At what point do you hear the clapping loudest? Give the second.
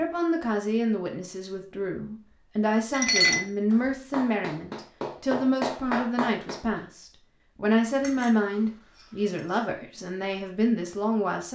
6 s.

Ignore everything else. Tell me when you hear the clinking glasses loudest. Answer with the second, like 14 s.
3 s.